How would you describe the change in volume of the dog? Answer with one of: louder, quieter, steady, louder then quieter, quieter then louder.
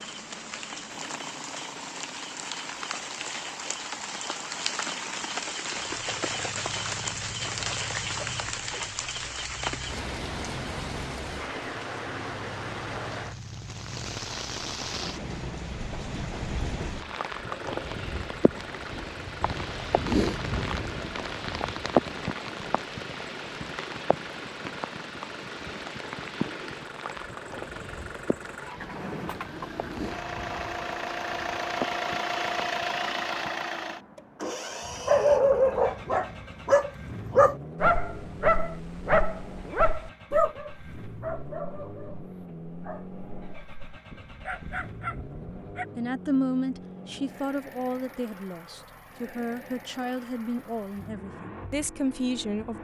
quieter.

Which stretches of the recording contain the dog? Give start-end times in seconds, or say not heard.
34.9-45.9.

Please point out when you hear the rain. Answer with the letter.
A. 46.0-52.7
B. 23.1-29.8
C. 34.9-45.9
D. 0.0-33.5
D.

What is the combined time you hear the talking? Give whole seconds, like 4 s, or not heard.
7 s.